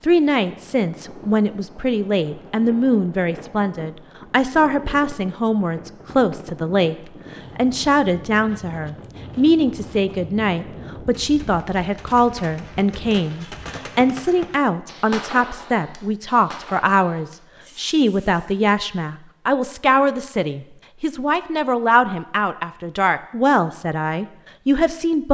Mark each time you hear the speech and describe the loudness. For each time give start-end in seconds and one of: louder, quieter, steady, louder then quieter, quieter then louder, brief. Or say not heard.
0.0-7.0 steady
7.5-25.2 steady.